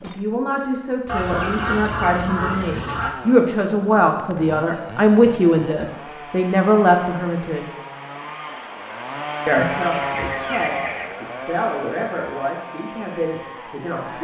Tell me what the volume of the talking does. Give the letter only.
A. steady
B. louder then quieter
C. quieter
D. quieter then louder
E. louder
B.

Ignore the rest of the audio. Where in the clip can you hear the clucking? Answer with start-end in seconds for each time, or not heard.
1.1-3.1, 9.6-11.1.